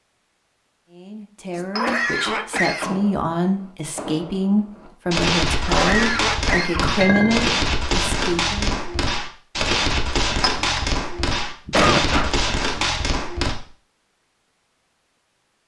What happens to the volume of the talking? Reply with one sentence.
The volume of the talking goes up.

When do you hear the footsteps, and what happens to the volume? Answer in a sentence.
You can't hear the footsteps here.